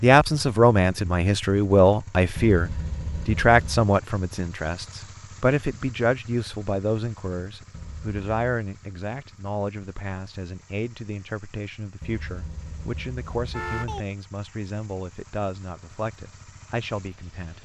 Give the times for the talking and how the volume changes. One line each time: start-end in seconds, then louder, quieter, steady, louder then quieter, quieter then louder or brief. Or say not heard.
0.0-17.6 quieter.